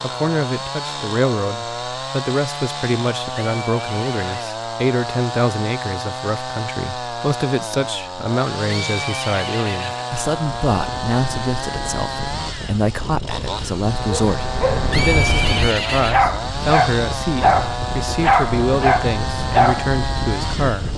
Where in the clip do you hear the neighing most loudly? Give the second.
15 s.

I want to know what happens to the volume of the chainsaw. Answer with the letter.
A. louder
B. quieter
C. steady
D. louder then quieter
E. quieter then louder
C.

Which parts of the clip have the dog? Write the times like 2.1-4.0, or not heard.
14.2-19.9.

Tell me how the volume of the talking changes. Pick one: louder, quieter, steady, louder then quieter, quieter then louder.
steady.